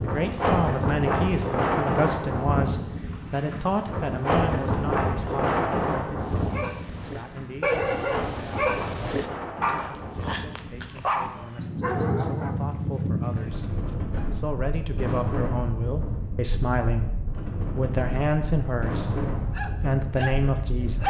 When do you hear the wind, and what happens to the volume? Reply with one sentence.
The wind can be heard from 0.0 to 21.0 s, getting quieter.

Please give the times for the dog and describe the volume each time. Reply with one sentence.
The dog can be heard from 6.2 to 14.7 s, getting quieter; and briefly from 19.5 to 21.0 s.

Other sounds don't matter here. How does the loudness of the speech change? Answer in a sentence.
The volume of the speech goes down, then up.